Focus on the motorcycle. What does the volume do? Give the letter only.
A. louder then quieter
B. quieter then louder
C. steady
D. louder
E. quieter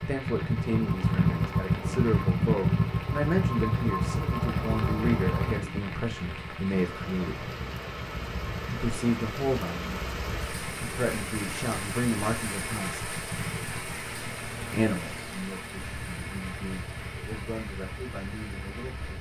E.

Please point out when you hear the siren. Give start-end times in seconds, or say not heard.
not heard.